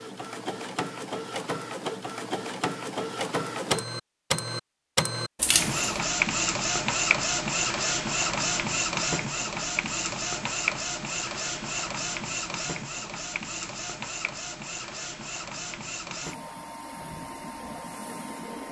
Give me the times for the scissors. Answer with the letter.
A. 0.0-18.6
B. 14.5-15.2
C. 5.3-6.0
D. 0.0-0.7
C.